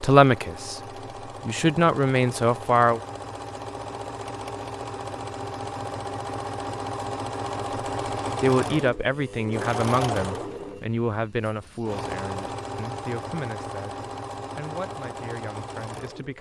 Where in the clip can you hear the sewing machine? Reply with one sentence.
The sewing machine can be heard from 0.0 to 16.3 s.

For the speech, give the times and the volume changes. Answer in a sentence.
You can hear the speech briefly from 0.0 to 0.8 s; briefly from 1.4 to 3.0 s; and from 8.4 to 16.3 s, getting quieter.